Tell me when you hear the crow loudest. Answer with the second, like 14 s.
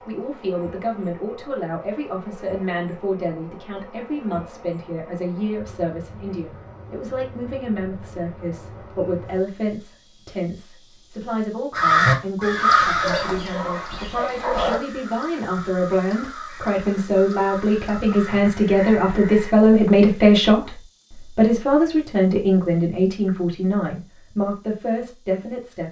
12 s.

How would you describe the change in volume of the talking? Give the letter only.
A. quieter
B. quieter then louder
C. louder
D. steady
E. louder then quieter
C.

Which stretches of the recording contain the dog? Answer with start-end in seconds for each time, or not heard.
12.8-14.8.